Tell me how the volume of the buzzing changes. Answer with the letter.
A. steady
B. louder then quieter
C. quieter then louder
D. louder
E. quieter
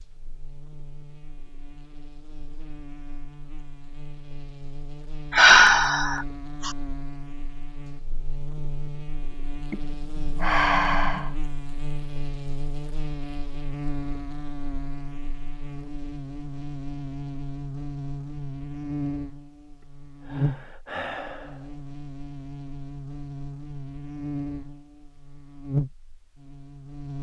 D.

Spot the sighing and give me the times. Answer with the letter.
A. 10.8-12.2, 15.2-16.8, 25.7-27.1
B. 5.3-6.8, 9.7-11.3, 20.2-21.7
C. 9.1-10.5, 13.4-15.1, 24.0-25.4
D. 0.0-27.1
B.